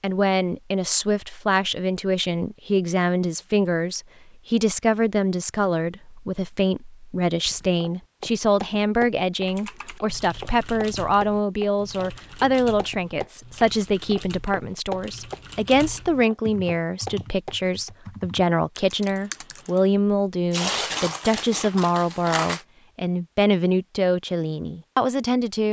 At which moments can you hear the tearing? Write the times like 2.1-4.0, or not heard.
20.5-22.6.